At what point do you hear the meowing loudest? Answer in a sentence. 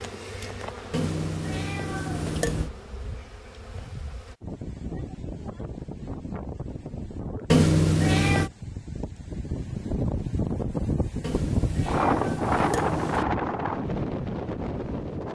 The loudest moment of the meowing is at 8 seconds.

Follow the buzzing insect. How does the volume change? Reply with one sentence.
The volume of the buzzing insect goes down.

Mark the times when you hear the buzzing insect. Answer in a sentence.
The buzzing insect can be heard from 0.0 to 4.3 s.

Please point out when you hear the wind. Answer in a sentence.
The wind can be heard from 4.4 to 15.3 s.